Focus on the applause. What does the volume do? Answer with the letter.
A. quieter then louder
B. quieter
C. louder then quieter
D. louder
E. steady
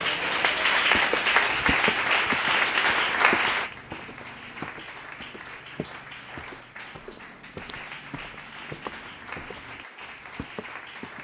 B.